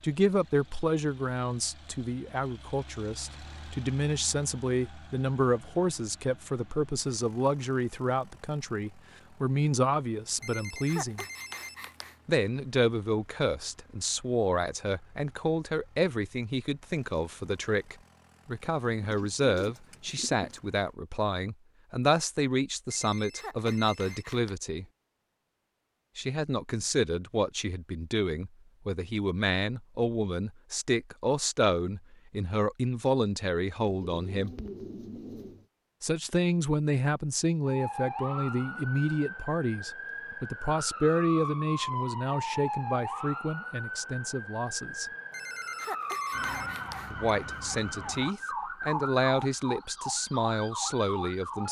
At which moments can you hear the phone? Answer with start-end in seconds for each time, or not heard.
10.4-12.2, 22.9-24.6, 45.3-47.3.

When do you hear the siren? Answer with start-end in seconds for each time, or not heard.
37.6-51.6.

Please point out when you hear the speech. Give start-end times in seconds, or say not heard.
0.0-11.2, 12.2-24.9, 26.1-34.5, 36.0-45.1, 47.1-51.6.